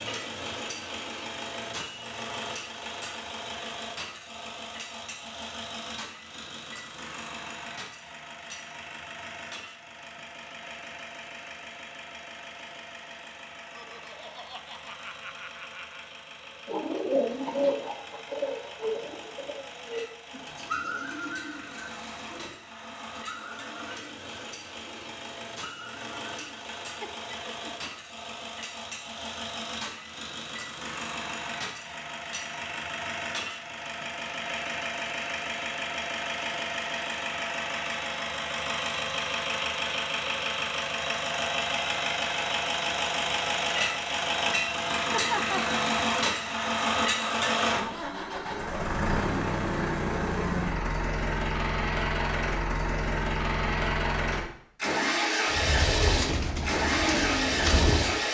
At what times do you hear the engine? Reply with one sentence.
The engine can be heard from 0.0 to 58.3 s.